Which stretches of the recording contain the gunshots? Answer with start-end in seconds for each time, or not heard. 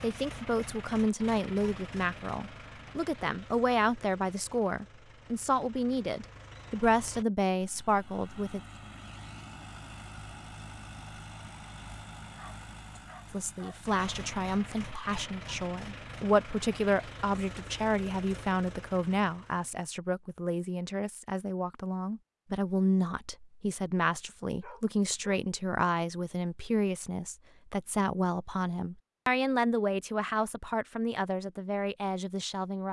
not heard.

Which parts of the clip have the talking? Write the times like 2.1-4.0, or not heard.
0.0-8.6, 13.3-32.8.